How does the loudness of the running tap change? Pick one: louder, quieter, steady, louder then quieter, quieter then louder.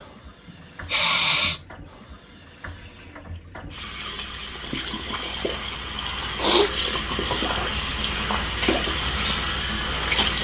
louder.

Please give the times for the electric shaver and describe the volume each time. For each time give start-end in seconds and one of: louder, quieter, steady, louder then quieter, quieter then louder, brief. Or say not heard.
not heard.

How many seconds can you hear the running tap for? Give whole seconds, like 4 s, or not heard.
10 s.